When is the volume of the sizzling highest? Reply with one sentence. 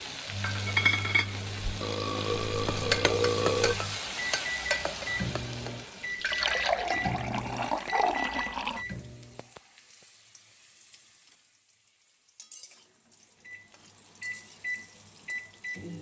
The volume of the sizzling peaks at 1 second.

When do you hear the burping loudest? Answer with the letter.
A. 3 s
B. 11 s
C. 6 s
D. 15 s
A.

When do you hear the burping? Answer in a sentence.
You can hear the burping from 1.8 to 3.8 s.